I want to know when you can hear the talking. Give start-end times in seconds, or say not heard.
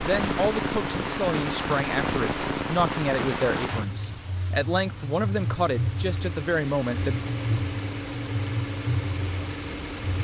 0.0-7.2.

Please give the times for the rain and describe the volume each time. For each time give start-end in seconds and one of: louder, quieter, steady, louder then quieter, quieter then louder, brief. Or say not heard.
0.0-10.1 steady.